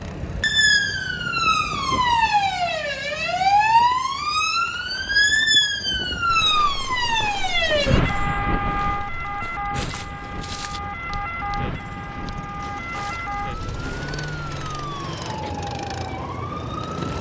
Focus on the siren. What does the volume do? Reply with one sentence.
The volume of the siren goes down.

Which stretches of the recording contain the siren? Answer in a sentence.
The siren can be heard from 0.0 to 17.1 s.